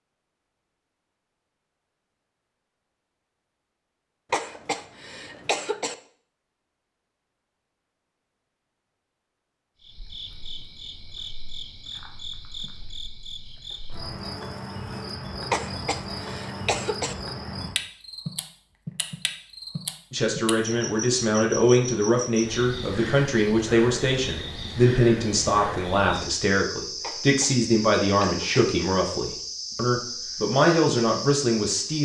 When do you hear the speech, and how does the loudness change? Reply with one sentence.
The speech can be heard from 20.1 to 32.0 s, at a steady volume.